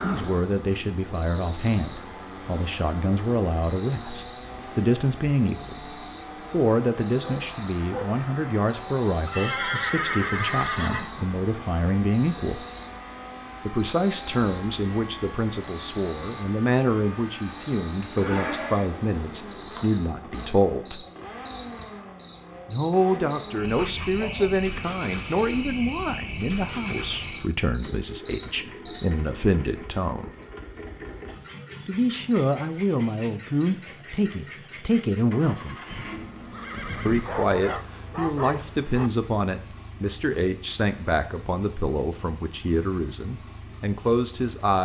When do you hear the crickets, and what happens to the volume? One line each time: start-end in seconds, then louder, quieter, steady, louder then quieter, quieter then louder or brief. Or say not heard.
0.0-44.7 steady.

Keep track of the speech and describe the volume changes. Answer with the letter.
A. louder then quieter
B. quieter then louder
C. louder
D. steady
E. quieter
D.